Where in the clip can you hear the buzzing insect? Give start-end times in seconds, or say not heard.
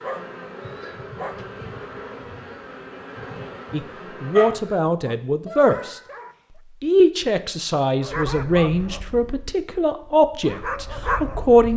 0.0-4.8.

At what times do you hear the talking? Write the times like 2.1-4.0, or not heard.
3.7-6.0, 6.8-11.7.